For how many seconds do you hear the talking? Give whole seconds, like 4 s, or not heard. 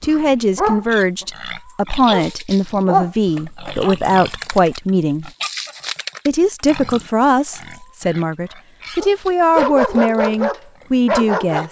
11 s.